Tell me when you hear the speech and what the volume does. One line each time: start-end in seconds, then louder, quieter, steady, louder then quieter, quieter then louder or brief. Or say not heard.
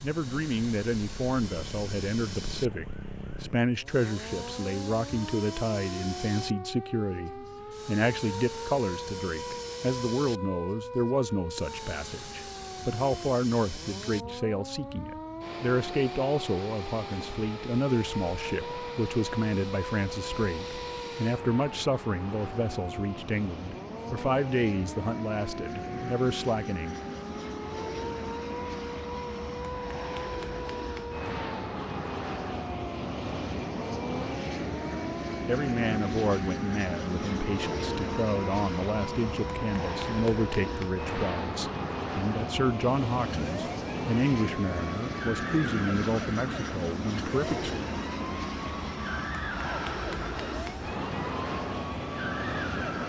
0.0-27.0 steady
35.5-47.9 steady.